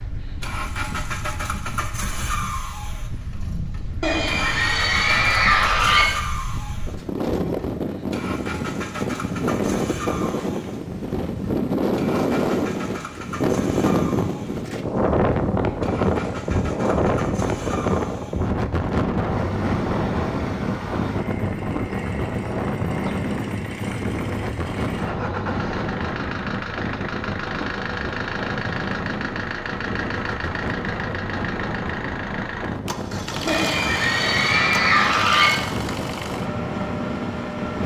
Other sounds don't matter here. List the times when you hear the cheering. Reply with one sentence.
You can hear the cheering from 4.0 to 6.0 s and from 33.5 to 35.5 s.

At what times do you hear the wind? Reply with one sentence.
You can hear the wind from 0.0 to 37.8 s.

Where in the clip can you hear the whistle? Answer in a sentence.
You can't hear the whistle here.